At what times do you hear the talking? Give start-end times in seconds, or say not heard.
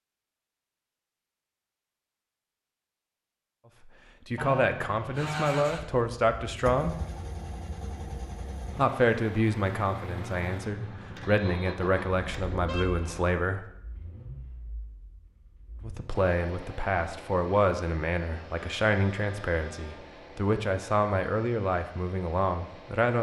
3.9-7.0, 8.8-13.7, 15.8-23.1.